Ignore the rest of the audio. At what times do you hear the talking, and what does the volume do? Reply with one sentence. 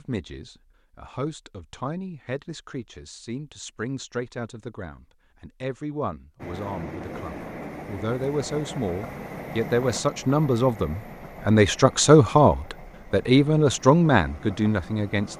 You can hear the talking from 0.0 to 15.3 s, getting louder.